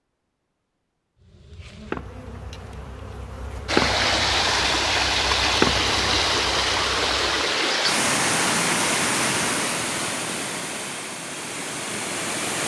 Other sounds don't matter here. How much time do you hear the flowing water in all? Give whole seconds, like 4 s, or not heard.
9 s.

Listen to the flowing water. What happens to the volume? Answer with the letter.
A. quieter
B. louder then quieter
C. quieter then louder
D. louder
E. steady
A.